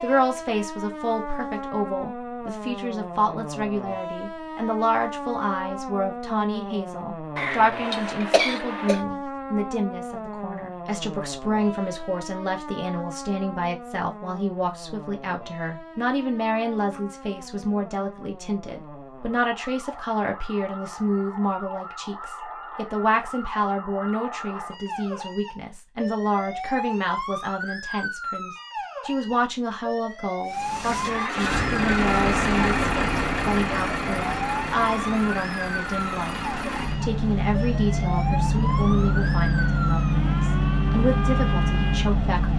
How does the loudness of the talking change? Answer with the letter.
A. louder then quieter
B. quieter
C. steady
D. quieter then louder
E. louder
C.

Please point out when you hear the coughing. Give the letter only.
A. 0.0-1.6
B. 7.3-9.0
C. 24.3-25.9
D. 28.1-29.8
B.